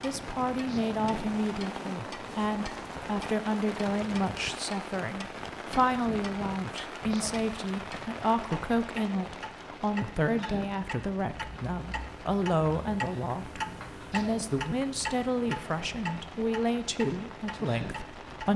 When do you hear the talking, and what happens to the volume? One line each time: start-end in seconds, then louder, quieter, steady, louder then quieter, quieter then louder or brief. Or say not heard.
0.0-18.5 steady.